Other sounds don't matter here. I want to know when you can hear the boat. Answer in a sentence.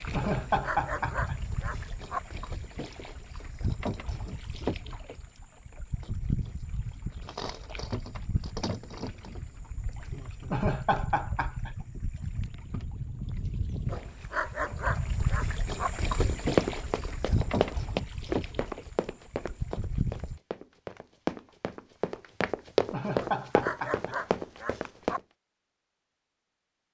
You can hear the boat from 0.0 to 20.4 s.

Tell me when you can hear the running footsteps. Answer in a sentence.
You can hear the running footsteps from 16.2 to 25.2 s.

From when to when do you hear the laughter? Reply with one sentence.
The laughter can be heard from 0.1 to 1.4 s, from 10.5 to 11.8 s and from 22.9 to 24.1 s.